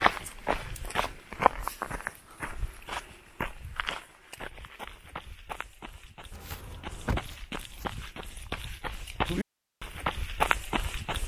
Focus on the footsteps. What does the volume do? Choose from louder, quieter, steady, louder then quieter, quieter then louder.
quieter then louder.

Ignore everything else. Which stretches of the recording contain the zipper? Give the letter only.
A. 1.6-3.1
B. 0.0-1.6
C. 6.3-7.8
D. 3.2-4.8
C.